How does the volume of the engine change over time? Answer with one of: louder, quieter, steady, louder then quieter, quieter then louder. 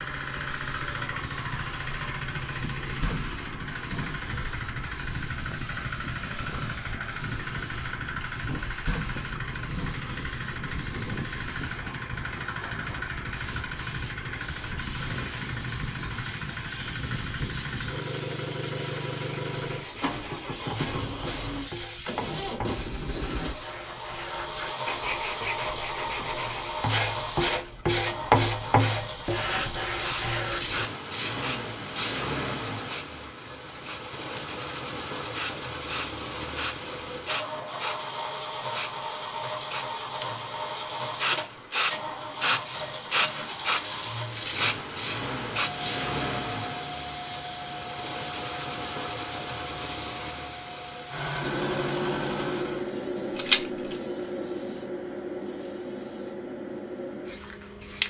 steady.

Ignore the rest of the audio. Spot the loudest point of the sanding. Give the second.
28 s.